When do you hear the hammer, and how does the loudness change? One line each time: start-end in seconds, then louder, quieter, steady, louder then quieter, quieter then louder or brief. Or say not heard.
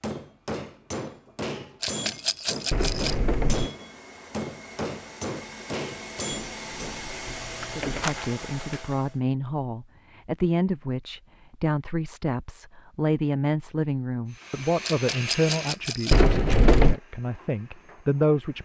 0.0-7.0 steady.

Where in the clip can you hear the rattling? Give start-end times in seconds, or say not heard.
1.8-3.1, 7.2-8.3, 14.8-16.2.